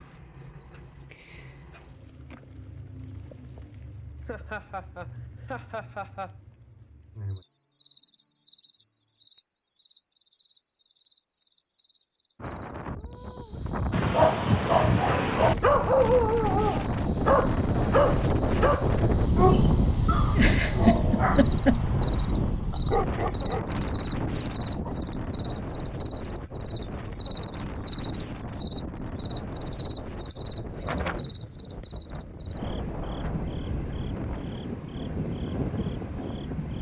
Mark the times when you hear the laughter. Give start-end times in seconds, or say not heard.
4.2-6.3, 20.4-21.8.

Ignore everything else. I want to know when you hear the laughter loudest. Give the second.
21 s.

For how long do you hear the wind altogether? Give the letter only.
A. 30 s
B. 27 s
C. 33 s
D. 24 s
D.